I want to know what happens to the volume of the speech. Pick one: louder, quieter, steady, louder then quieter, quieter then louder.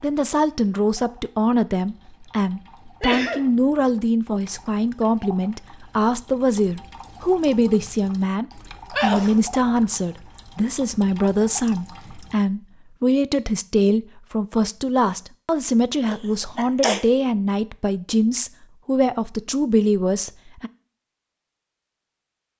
steady.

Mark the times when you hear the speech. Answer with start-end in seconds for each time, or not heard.
0.0-20.7.